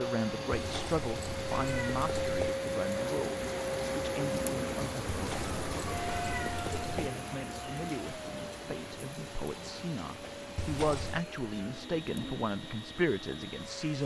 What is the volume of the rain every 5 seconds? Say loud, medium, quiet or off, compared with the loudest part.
loud, loud, medium.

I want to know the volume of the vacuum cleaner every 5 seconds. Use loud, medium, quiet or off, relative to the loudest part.
loud, medium, medium.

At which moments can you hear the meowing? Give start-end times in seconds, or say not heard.
0.5-2.5, 5.1-7.1, 10.6-11.2.